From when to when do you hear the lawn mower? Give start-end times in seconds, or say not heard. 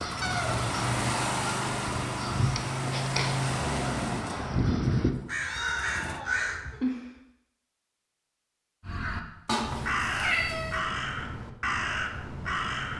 0.0-6.2.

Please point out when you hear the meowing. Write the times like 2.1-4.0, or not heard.
0.2-1.1, 5.4-7.1, 9.4-10.8.